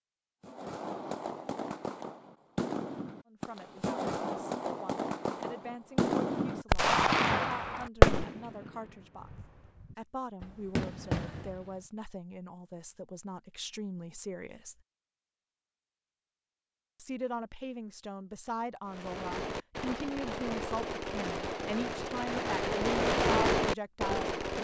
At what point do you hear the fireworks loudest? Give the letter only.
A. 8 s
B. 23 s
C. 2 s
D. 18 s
A.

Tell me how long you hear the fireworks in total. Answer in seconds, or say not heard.
17 s.